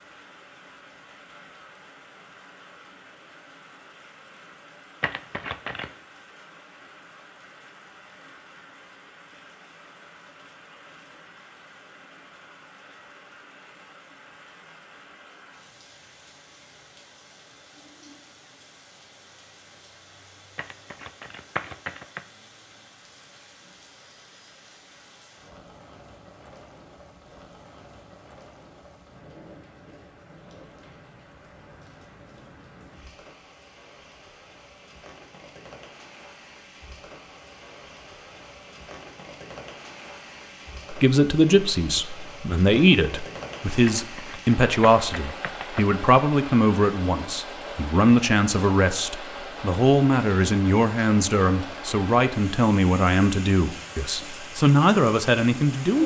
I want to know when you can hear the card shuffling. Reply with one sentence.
You can hear the card shuffling from 5.0 to 5.9 s, from 20.6 to 22.2 s and from 43.9 to 45.9 s.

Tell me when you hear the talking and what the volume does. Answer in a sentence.
You can hear the talking from 40.9 to 56.0 s, at a steady volume.